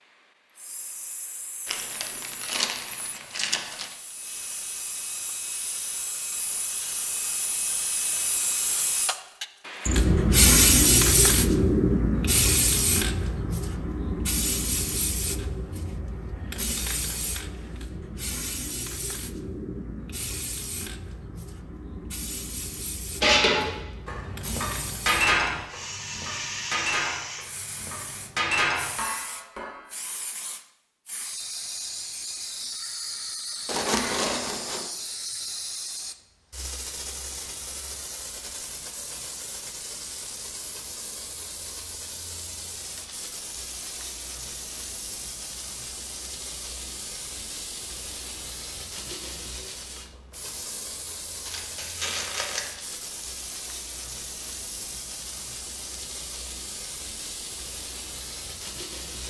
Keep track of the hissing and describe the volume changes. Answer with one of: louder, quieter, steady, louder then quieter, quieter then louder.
quieter.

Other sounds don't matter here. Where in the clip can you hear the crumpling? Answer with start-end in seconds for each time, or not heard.
1.6-4.0, 33.6-34.8, 51.5-52.7.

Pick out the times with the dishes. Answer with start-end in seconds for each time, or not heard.
23.2-29.7.